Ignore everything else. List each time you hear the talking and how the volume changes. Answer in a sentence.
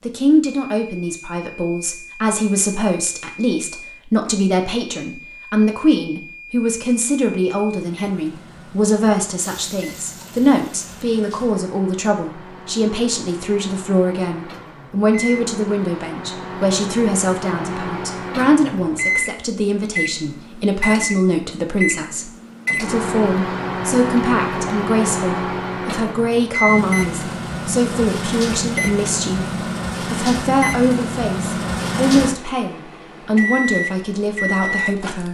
You can hear the talking from 0.1 to 35.2 s, at a steady volume.